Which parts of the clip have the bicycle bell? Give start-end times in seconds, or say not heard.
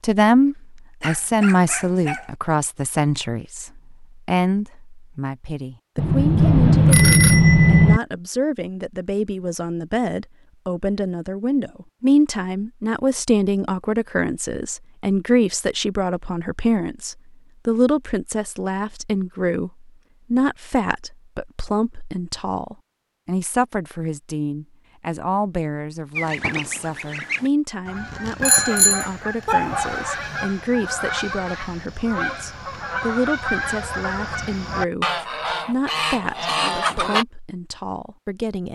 6.0-8.0, 28.4-29.6.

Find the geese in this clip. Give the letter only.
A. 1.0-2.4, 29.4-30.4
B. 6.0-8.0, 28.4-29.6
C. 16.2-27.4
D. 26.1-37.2
D.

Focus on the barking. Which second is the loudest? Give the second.
30 s.